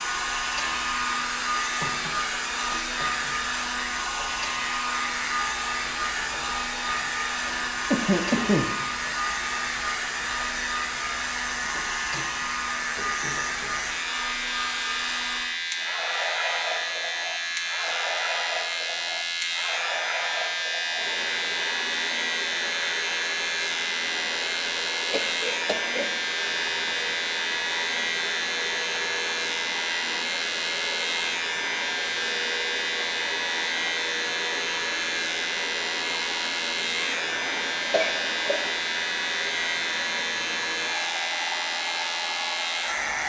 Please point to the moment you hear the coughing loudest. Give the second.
8 s.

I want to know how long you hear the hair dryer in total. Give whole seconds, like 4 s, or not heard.
43 s.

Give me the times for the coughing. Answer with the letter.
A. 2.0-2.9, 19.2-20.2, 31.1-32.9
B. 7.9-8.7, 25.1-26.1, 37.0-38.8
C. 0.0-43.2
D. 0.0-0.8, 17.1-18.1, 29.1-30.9
B.